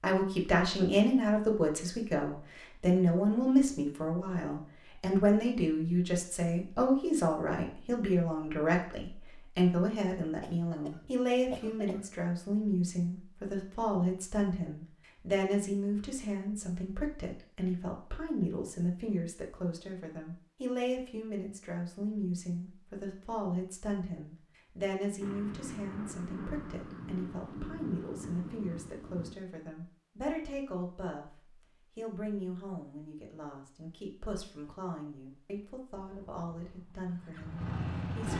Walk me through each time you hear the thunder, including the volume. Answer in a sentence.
The thunder can be heard from 25.2 to 29.4 s, at a steady volume.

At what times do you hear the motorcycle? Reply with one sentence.
The motorcycle can be heard from 35.9 to 38.3 s.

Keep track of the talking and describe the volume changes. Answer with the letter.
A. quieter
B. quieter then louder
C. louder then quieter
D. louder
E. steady
A.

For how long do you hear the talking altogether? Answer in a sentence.
You can hear the talking for 38 seconds altogether.